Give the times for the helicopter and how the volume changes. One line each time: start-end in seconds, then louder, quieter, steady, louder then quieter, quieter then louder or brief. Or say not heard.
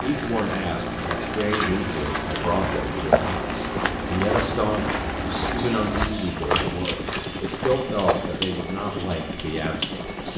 0.0-10.3 steady.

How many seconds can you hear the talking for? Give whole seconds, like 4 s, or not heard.
10 s.